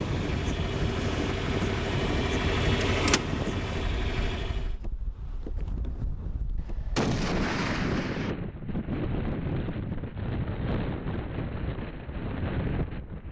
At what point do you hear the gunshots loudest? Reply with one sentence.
The loudest moment of the gunshots is at 7 seconds.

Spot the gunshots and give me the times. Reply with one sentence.
You can hear the gunshots from 6.5 to 8.3 s.